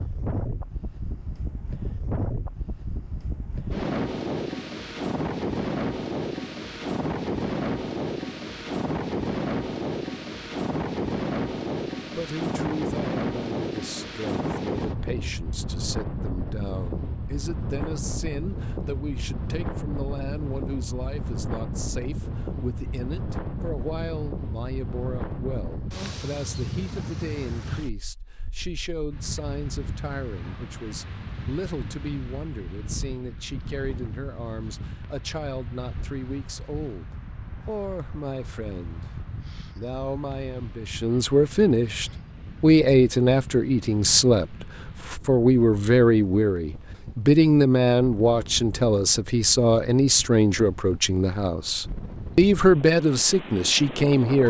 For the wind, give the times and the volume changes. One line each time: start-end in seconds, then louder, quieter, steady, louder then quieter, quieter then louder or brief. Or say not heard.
0.0-54.4 quieter.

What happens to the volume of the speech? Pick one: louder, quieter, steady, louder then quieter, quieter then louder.
louder.